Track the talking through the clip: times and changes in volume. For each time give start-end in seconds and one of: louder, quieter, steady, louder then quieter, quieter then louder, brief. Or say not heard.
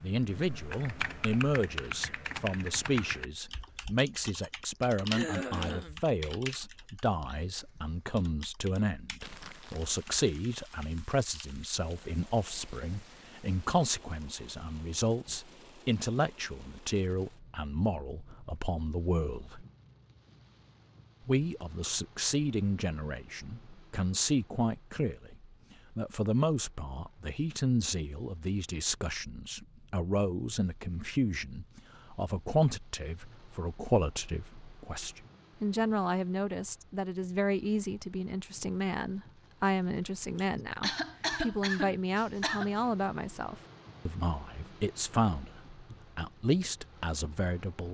0.0-19.6 steady
21.2-47.8 steady.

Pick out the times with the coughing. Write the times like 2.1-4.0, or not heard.
5.1-6.0, 40.4-42.7.